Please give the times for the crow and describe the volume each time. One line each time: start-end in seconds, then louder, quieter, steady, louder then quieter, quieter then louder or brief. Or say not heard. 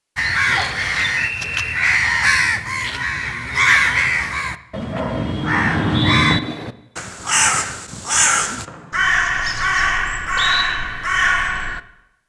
0.1-11.8 steady.